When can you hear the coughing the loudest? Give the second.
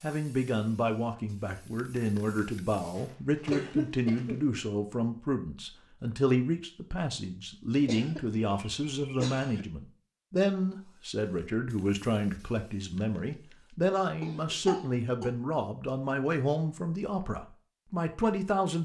4 s.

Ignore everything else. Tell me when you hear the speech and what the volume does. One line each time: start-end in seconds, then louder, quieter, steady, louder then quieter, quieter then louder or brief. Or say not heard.
0.0-18.8 steady.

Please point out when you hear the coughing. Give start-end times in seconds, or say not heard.
3.0-4.4, 7.8-9.7, 14.2-15.3.